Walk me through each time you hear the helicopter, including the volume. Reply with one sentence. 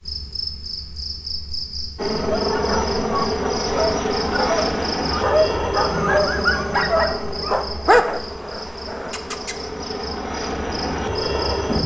The helicopter can be heard from 1.9 to 11.8 s, getting quieter then louder.